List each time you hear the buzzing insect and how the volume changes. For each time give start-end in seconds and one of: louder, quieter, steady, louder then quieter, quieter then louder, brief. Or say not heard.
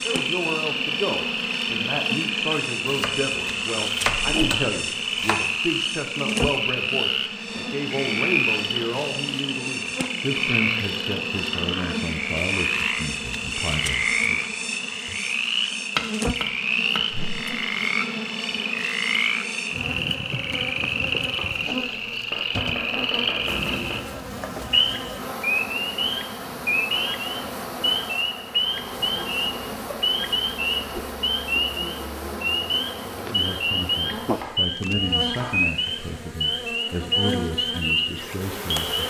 0.0-39.0 steady.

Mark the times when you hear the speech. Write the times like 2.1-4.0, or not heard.
0.0-14.4, 33.2-39.0.